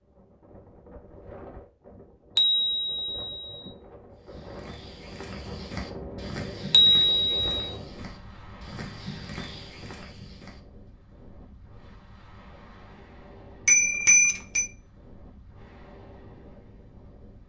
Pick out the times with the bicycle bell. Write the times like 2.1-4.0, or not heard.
2.4-3.7, 6.7-7.5, 13.7-14.7.